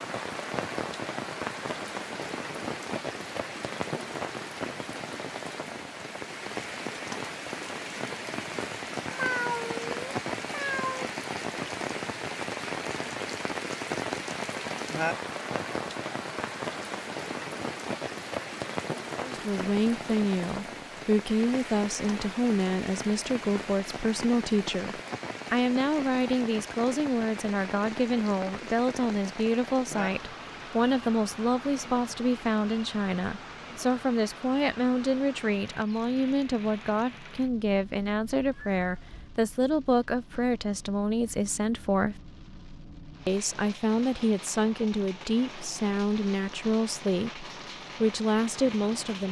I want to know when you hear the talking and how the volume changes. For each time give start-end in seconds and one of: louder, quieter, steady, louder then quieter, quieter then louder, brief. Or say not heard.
19.2-42.1 steady
43.2-49.2 steady.